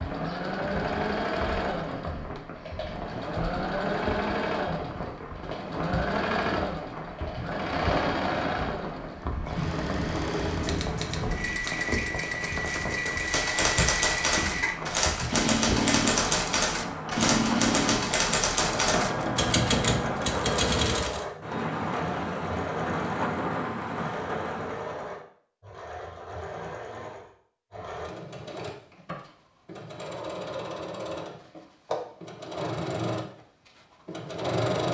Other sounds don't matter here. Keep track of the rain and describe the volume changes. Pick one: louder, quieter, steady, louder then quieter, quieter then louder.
louder.